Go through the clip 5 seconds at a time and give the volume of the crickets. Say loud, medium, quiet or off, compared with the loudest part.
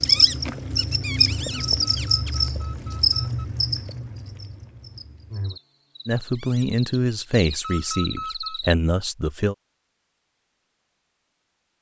loud, quiet, off.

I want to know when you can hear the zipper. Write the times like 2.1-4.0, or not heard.
not heard.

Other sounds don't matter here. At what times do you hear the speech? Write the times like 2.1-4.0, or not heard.
6.0-9.6.